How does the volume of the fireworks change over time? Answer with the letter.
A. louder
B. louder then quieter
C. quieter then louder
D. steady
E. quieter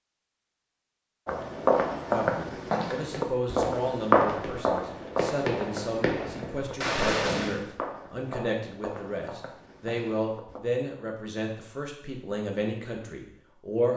A.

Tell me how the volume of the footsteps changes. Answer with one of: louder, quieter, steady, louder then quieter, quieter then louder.
quieter.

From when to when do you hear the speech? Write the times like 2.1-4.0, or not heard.
2.0-13.9.